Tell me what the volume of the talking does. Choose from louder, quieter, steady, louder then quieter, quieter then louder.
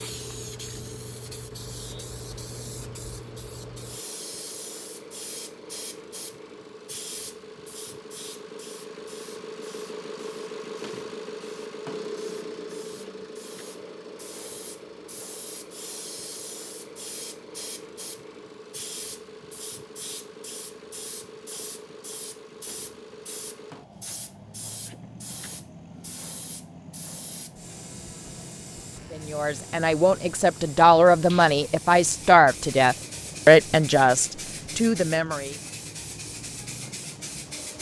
louder then quieter.